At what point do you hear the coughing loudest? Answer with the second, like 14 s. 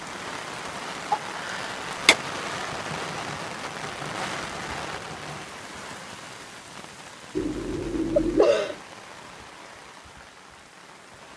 8 s.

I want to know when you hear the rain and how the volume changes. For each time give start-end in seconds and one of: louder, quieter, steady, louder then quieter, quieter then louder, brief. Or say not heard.
0.0-11.3 quieter.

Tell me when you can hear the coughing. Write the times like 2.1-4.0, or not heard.
1.1-2.1, 7.3-8.8.